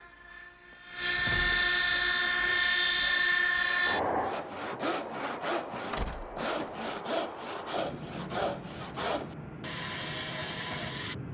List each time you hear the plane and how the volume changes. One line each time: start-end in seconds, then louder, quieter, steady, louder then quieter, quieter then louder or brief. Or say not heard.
0.0-11.2 quieter.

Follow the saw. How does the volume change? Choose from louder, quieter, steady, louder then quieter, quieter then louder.
louder.